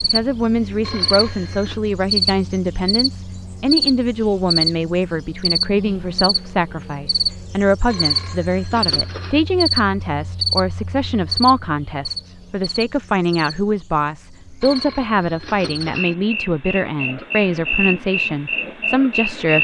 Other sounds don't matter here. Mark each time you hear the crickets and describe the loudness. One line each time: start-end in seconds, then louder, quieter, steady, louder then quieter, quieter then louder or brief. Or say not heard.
0.0-19.5 quieter then louder.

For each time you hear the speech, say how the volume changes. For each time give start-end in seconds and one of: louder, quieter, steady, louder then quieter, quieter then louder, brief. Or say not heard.
0.0-19.5 steady.